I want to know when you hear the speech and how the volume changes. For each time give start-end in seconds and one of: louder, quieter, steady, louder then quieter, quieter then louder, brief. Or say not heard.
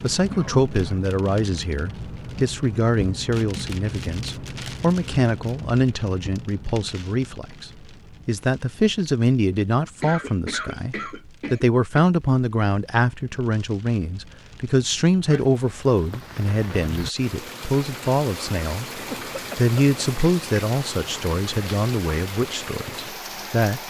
0.0-23.8 steady.